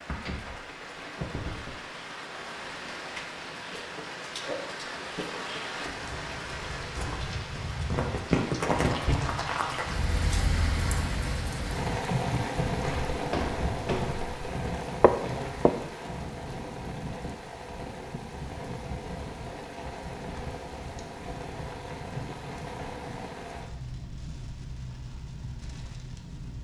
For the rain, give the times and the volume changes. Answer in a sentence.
You can hear the rain from 0.0 to 26.5 s, getting louder then quieter.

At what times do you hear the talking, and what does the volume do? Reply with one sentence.
You can't hear the talking here.